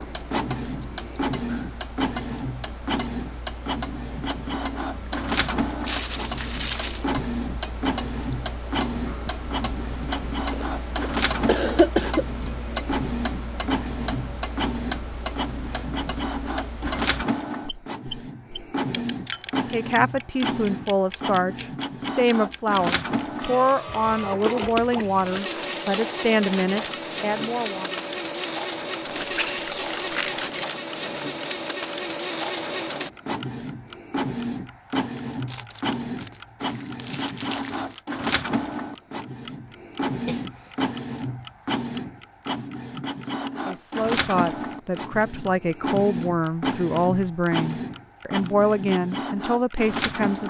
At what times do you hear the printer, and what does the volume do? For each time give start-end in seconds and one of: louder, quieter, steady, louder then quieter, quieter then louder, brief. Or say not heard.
0.0-50.4 steady.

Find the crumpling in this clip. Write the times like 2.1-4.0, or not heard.
5.8-7.0, 29.2-30.6, 35.5-38.0.